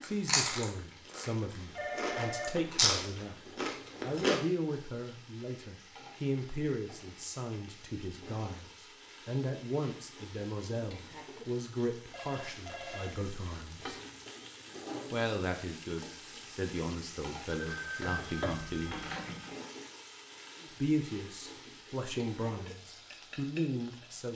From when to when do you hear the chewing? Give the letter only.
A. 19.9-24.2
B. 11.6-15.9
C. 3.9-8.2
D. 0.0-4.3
D.